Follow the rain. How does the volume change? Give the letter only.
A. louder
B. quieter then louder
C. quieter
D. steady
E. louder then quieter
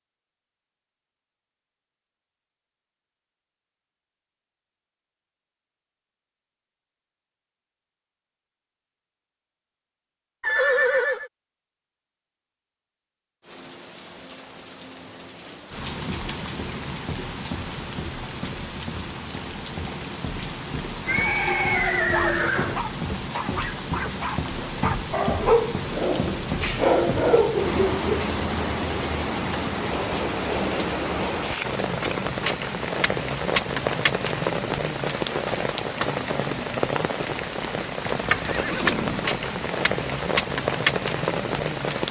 A.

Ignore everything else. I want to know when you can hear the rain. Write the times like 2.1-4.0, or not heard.
13.4-42.0.